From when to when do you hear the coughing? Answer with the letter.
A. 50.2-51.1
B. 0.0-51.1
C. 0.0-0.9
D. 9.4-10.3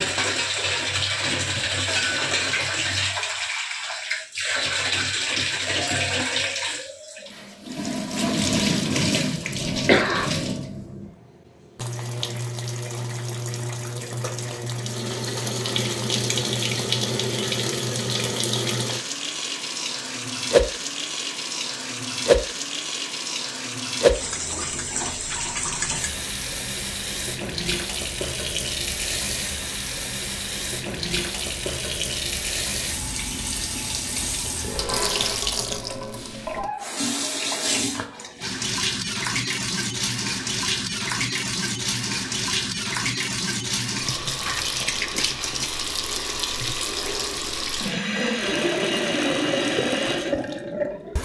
D.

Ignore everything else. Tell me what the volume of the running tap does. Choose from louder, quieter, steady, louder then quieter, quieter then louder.
steady.